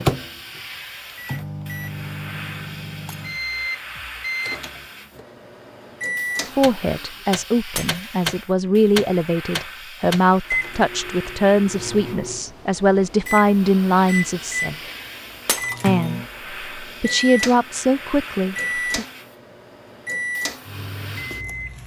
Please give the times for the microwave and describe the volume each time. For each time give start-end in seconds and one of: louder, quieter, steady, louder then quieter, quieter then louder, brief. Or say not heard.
0.0-21.8 steady.